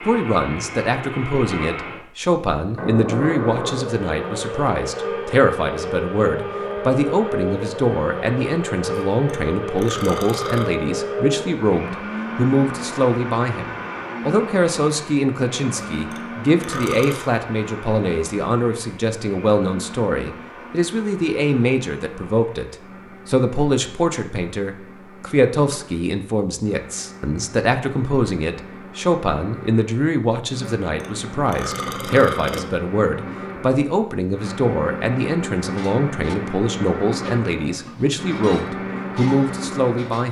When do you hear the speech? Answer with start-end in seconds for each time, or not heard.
0.0-40.2.